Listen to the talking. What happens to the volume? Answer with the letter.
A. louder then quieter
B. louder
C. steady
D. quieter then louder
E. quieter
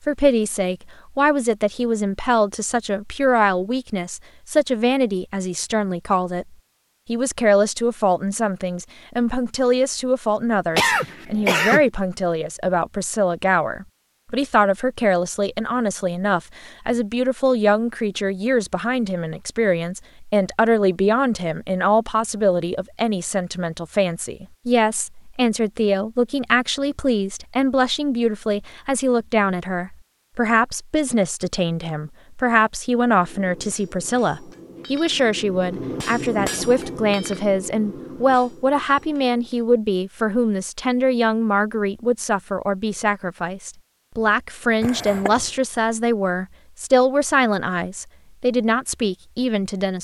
C.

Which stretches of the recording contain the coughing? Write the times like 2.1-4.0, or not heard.
10.8-11.8, 44.8-45.5.